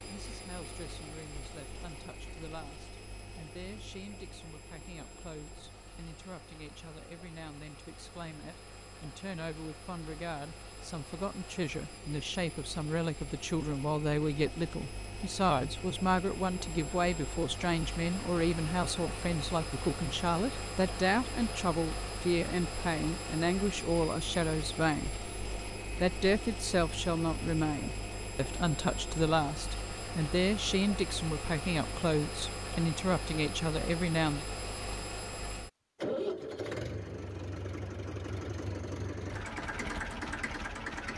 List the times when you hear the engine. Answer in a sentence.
The engine can be heard from 0.0 to 41.1 s.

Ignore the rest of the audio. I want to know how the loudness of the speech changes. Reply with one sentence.
The loudness of the speech goes up.